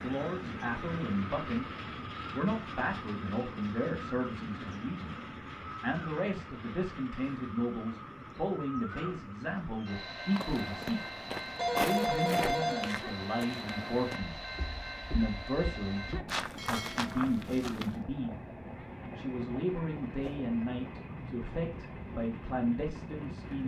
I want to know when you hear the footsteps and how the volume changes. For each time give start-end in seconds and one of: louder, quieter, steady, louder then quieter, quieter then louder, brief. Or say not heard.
10.2-18.0 quieter then louder.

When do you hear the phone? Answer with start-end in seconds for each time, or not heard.
11.6-13.0.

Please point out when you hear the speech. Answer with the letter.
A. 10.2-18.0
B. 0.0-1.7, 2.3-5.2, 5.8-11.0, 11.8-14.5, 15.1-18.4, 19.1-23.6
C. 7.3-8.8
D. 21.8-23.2
B.